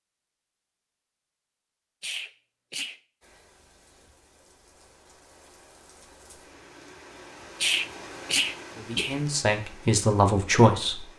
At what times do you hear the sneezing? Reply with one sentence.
The sneezing can be heard from 2.0 to 3.0 s and from 7.6 to 9.2 s.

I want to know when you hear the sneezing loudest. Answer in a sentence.
The volume of the sneezing peaks at 8 seconds.